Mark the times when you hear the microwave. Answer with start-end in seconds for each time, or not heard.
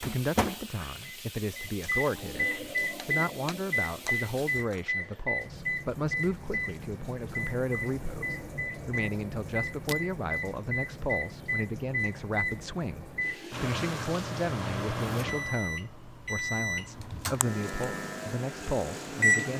0.0-19.5.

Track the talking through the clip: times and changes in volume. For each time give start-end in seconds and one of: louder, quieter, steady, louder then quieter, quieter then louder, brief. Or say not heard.
0.0-19.5 steady.